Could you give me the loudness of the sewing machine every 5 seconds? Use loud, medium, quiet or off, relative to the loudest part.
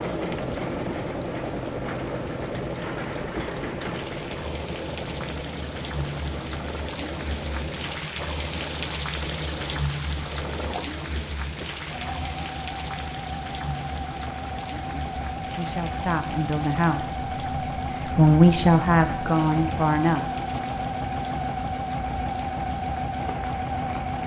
loud, medium, medium, loud, loud.